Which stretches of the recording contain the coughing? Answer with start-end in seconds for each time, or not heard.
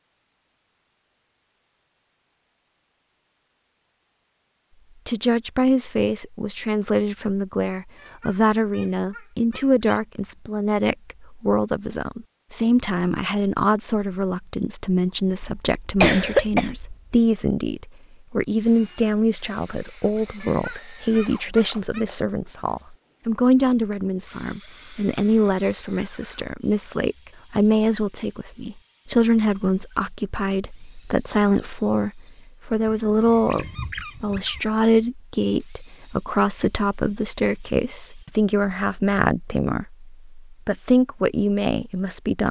15.4-16.9.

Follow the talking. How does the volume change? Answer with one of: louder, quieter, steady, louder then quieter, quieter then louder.
steady.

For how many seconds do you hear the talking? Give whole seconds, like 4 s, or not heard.
37 s.